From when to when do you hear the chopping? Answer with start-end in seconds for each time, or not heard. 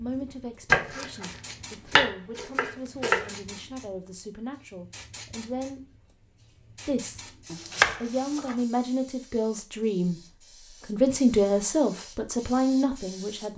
0.7-3.3, 7.5-8.6.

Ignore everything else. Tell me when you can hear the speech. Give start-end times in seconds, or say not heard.
0.0-6.0, 6.7-7.2, 8.0-10.2, 10.8-13.5.